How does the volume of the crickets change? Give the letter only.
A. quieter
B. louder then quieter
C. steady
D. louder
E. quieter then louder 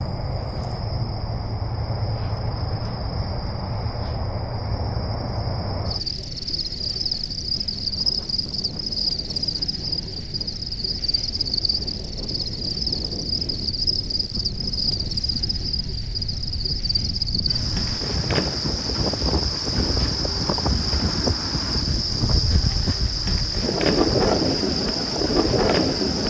C.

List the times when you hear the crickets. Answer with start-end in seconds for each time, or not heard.
0.0-26.2.